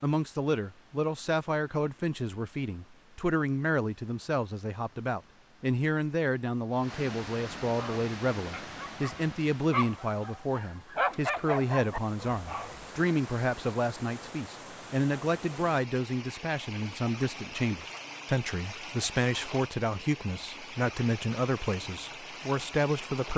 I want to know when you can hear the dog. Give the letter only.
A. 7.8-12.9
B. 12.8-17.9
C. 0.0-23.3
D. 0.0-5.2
A.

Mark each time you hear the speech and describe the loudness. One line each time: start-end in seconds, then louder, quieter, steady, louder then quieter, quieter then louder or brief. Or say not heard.
0.0-23.3 steady.